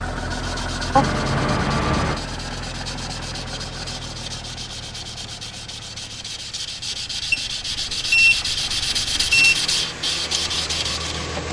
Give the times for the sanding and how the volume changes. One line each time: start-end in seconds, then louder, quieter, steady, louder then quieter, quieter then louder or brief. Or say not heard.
0.0-11.4 louder.